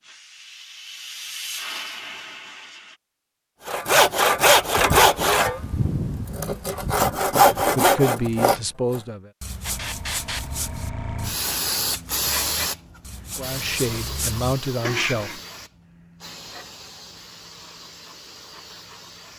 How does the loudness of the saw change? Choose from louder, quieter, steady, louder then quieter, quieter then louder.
quieter then louder.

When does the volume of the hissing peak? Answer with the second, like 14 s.
12 s.